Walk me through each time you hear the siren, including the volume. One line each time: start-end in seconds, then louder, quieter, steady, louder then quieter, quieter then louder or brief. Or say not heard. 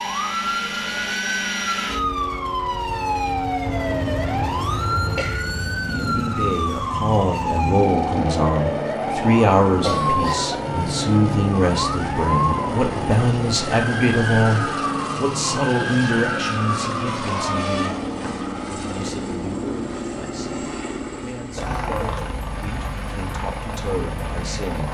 0.0-17.9 steady.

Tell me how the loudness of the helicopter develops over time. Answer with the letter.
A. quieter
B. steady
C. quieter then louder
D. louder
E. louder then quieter
B.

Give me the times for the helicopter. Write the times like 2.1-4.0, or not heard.
0.0-24.8.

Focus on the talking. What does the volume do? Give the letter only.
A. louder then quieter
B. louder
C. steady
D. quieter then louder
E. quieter
E.